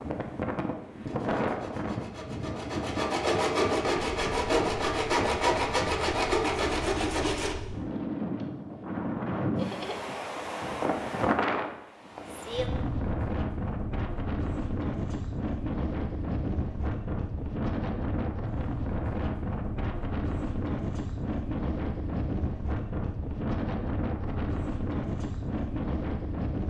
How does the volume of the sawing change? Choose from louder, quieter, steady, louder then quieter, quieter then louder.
louder.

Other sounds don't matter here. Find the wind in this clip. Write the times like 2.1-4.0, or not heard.
0.0-26.6.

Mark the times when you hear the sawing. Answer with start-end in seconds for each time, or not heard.
0.9-7.5.